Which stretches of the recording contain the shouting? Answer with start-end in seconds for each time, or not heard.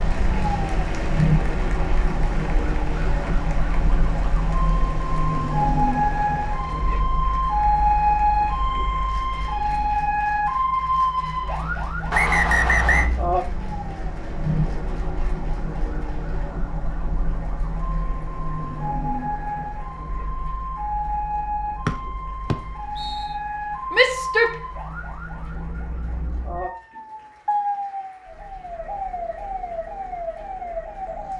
23.9-24.6.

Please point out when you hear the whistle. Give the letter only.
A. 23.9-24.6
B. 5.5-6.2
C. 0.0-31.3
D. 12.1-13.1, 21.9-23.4
D.